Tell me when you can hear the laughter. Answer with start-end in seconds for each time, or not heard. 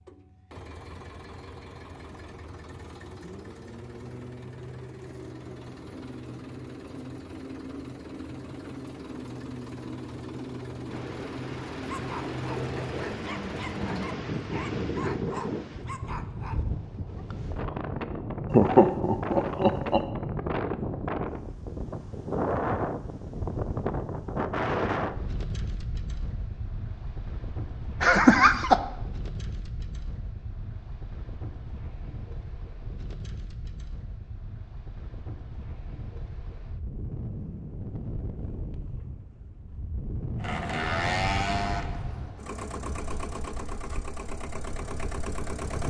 18.5-20.0, 28.0-28.8.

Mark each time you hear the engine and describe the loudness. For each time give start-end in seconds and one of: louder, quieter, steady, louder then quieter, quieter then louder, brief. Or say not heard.
0.0-14.2 louder
40.4-45.8 quieter.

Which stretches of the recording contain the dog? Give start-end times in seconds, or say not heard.
11.9-17.2.